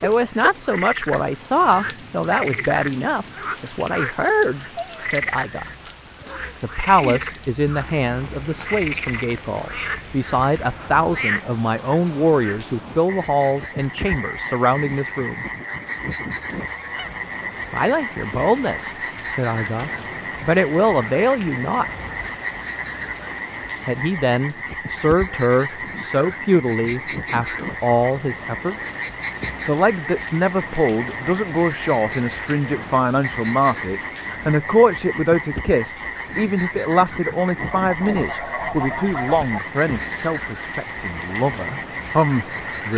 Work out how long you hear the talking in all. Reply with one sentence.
The talking can be heard for 37 seconds in total.